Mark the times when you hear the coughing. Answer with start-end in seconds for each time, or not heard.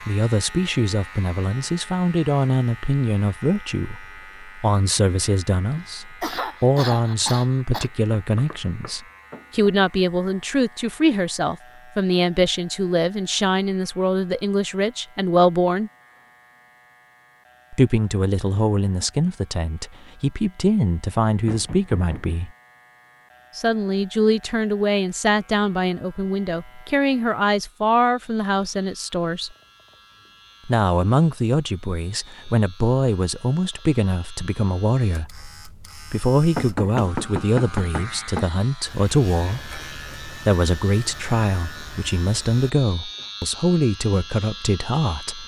5.6-7.9.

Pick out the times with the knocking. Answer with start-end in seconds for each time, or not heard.
7.8-9.8, 21.4-22.4, 36.5-38.5.